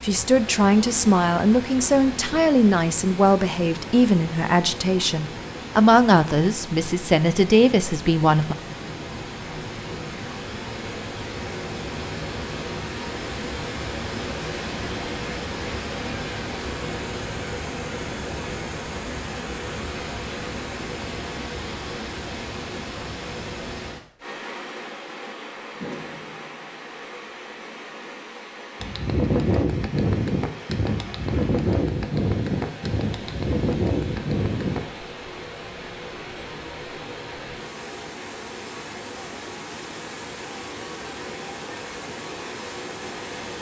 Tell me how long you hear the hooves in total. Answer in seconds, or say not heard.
6 s.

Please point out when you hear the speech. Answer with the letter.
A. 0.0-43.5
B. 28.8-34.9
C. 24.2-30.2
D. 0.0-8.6
D.